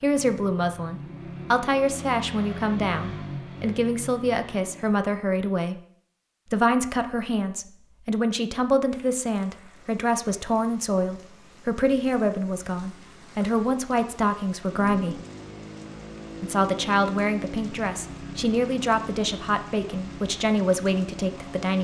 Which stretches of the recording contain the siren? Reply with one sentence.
You can't hear the siren here.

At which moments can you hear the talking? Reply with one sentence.
The talking can be heard from 0.0 to 5.8 s, from 6.5 to 15.2 s and from 16.4 to 21.7 s.